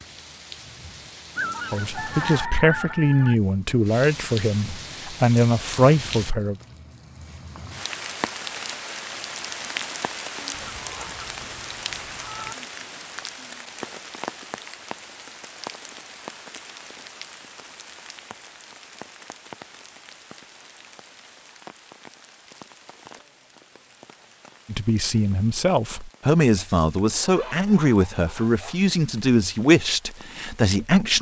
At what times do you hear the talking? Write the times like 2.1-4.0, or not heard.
1.7-6.5, 24.6-31.1.